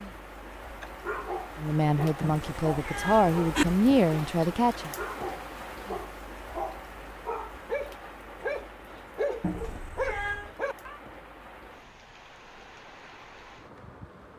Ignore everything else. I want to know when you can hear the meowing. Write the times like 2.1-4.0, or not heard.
2.2-3.6, 9.4-10.5.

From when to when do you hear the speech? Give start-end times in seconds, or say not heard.
1.6-4.9.